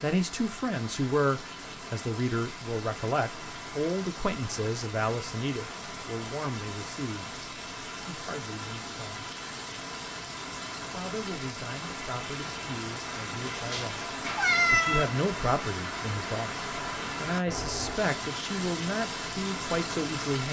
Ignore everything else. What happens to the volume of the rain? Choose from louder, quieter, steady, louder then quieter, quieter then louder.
louder.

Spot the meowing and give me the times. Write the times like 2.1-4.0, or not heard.
13.5-15.1.